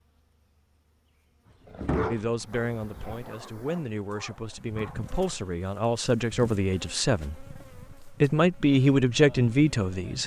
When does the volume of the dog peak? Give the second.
2 s.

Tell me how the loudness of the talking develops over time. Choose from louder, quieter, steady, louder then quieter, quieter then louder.
louder.